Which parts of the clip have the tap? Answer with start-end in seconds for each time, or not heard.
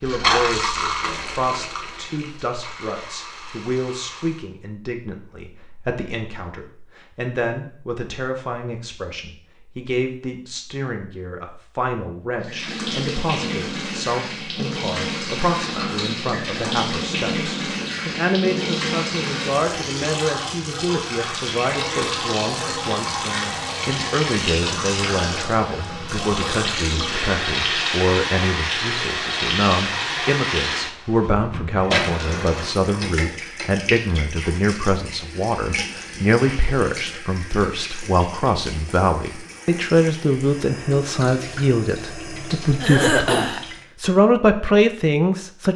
0.0-4.5, 12.4-43.9.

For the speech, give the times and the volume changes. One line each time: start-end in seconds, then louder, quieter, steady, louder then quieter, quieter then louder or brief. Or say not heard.
0.0-45.7 louder.